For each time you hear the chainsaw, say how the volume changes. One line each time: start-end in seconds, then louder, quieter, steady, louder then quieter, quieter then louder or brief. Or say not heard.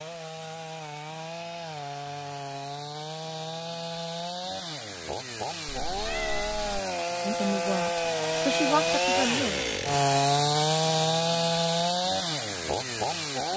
0.0-13.5 louder.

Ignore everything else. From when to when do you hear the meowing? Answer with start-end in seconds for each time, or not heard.
5.7-6.8.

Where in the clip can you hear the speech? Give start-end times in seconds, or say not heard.
7.2-9.7.